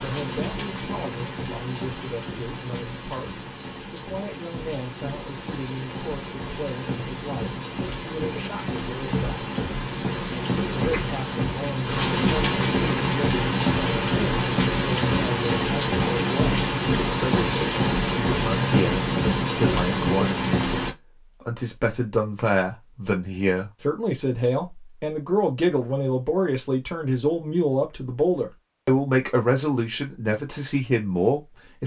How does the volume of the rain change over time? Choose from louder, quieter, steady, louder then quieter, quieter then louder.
louder.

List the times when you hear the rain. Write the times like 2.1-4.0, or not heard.
0.0-20.9.